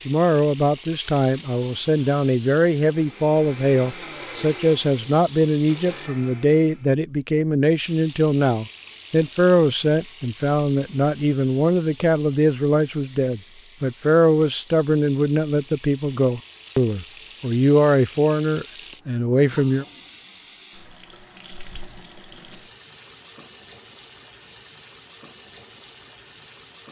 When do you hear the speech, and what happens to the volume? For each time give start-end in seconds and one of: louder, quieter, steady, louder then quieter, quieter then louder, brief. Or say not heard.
0.1-19.9 steady.